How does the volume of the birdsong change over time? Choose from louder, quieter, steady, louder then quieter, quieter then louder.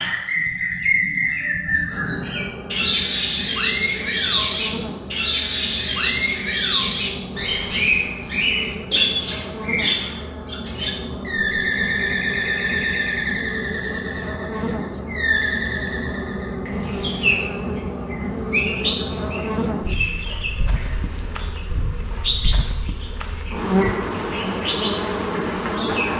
quieter.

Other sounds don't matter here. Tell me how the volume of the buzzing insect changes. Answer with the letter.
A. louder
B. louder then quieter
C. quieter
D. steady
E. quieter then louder
A.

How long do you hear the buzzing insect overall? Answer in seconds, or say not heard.
24 s.